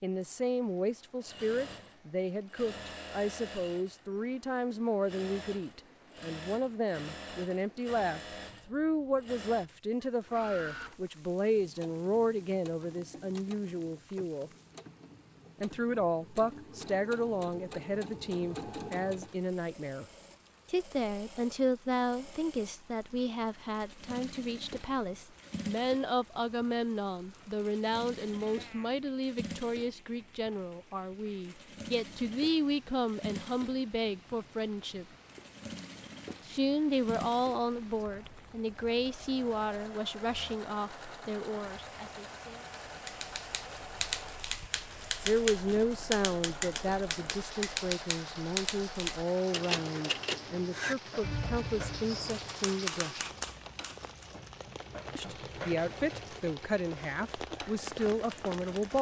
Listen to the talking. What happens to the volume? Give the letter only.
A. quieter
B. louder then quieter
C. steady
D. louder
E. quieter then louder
C.